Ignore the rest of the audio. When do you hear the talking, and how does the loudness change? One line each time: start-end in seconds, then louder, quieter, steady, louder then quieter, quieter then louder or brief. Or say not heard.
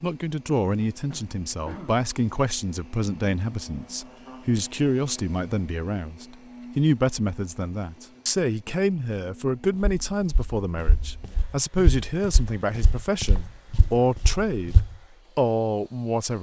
0.0-14.8 steady
15.3-16.3 brief.